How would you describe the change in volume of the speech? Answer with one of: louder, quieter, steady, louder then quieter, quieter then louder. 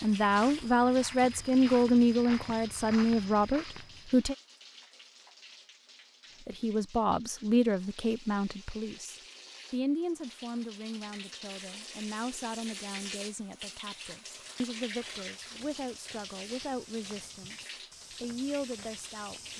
quieter.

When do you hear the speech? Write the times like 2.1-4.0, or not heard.
0.0-4.3, 6.5-19.5.